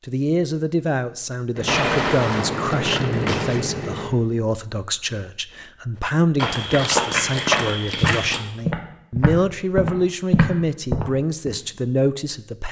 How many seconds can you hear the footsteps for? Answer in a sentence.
The footsteps can be heard for 5 seconds in total.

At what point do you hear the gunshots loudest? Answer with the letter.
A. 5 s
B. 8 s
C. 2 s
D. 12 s
C.